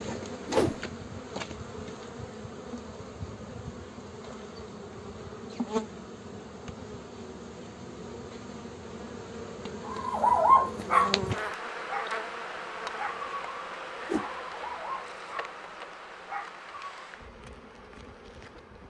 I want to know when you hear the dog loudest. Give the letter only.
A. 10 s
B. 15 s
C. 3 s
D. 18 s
A.